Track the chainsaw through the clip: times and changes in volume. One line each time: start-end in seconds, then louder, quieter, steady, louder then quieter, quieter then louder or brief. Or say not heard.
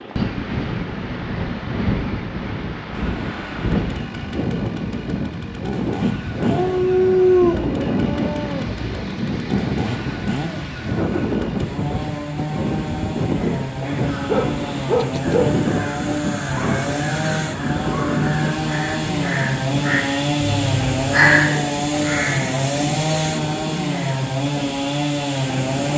2.9-25.9 louder.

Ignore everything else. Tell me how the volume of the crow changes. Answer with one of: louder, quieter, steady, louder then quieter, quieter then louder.
louder.